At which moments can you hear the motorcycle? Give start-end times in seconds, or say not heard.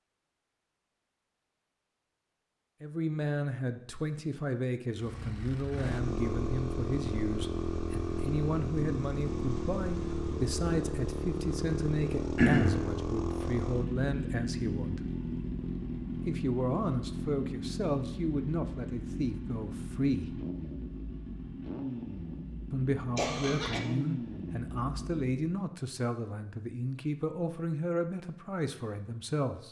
5.0-25.6.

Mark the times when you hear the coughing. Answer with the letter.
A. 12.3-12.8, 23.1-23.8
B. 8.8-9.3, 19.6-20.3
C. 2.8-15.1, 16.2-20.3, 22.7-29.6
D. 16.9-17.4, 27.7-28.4
A.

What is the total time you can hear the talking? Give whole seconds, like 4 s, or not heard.
23 s.